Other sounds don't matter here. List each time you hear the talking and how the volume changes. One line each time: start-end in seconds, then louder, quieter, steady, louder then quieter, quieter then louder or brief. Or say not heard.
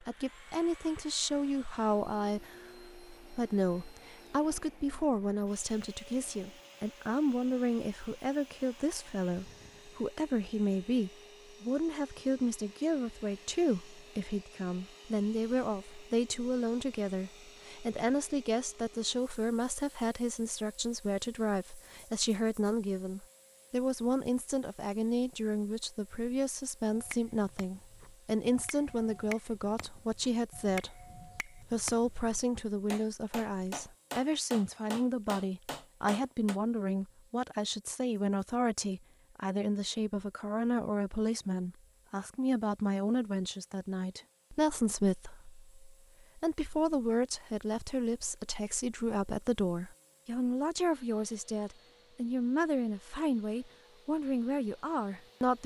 0.0-55.6 steady.